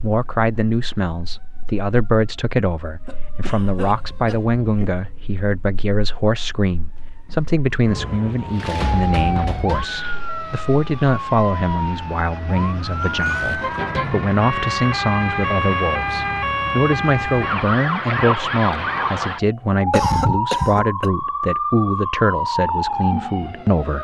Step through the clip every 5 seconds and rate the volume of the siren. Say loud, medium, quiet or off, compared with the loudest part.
quiet, medium, loud, loud, loud.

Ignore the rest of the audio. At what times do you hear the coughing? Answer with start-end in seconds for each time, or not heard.
3.0-5.0, 12.6-13.8, 19.9-21.1.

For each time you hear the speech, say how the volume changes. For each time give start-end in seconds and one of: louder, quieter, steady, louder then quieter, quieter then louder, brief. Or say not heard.
0.0-23.9 steady.